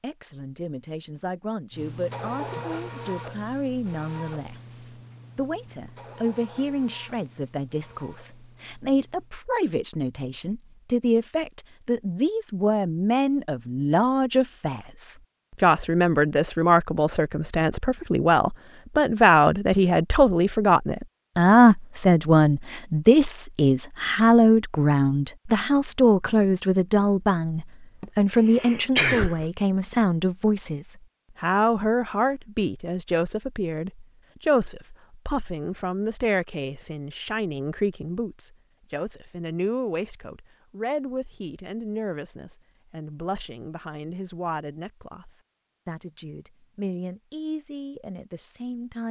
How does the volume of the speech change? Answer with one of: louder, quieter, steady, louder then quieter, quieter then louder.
louder then quieter.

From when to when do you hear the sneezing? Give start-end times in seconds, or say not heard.
28.0-29.4.